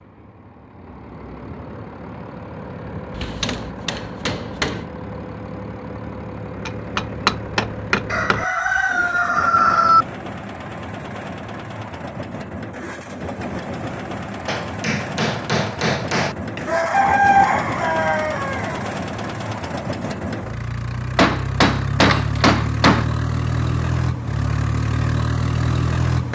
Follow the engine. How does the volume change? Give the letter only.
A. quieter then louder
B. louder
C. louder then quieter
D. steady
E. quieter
B.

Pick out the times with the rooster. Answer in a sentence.
You can hear the rooster from 8.1 to 10.1 s and from 16.6 to 18.9 s.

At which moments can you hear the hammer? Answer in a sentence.
You can hear the hammer from 3.1 to 4.8 s, from 6.7 to 8.4 s, from 14.4 to 16.7 s and from 21.1 to 23.1 s.